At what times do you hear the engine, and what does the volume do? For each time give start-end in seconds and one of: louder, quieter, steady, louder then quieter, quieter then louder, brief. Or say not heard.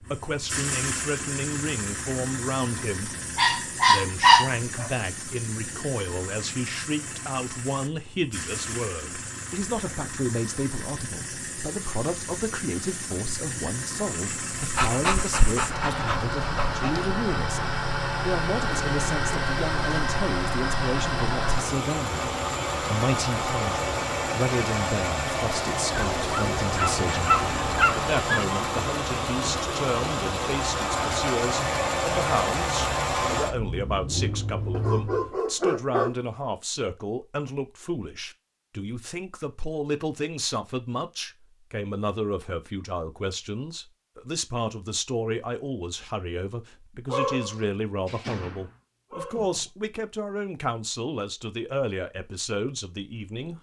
0.0-35.4 louder.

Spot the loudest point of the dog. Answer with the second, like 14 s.
4 s.